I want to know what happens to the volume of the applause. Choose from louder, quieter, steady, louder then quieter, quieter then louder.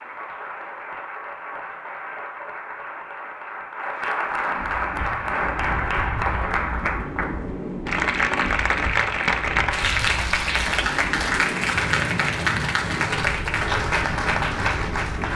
louder.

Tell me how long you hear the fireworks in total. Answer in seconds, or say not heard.
not heard.